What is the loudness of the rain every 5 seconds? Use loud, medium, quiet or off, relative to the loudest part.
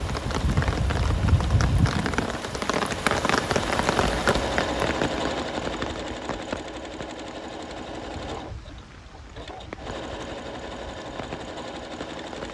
loud, medium, quiet.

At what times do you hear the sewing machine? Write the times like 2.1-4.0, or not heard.
0.0-12.4.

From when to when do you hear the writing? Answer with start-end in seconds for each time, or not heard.
not heard.